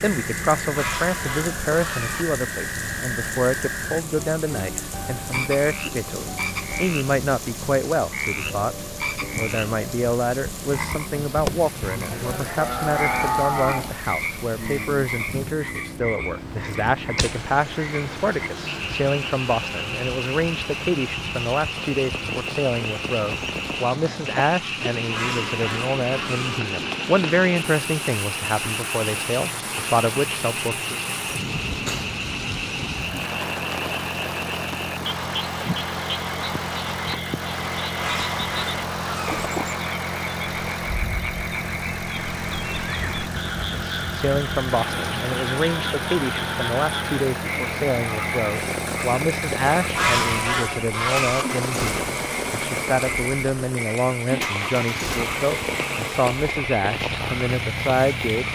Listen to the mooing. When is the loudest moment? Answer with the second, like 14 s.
13 s.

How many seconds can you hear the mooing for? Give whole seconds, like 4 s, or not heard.
2 s.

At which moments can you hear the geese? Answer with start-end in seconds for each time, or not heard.
0.8-2.2, 25.1-26.6, 38.0-39.5, 50.0-51.5.